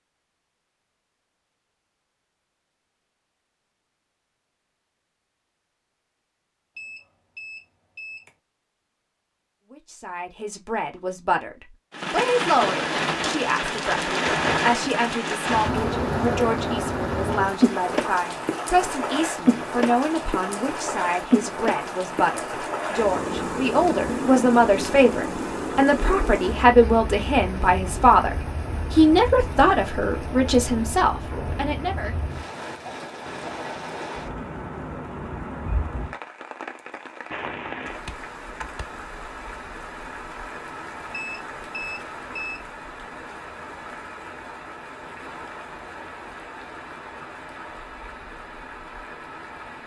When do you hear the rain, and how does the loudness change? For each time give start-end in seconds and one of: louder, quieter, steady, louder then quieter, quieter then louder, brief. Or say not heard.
11.9-49.8 quieter.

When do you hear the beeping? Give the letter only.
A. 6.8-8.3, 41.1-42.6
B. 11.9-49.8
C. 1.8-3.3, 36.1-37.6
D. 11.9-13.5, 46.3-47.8
A.